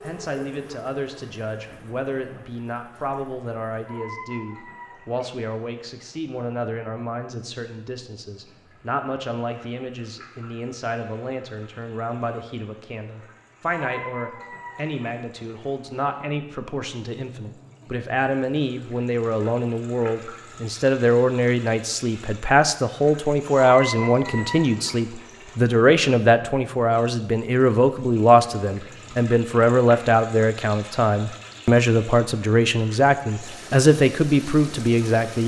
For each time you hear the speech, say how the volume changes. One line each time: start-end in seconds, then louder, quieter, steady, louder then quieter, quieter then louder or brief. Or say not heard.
0.0-35.4 louder.